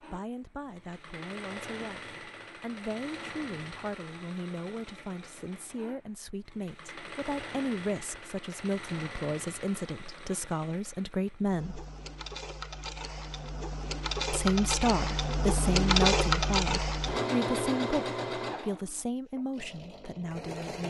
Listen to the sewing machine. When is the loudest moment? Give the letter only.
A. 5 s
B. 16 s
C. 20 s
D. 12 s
B.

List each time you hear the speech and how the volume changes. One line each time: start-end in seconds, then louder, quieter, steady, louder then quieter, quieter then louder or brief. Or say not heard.
0.0-11.8 louder
14.3-20.8 quieter.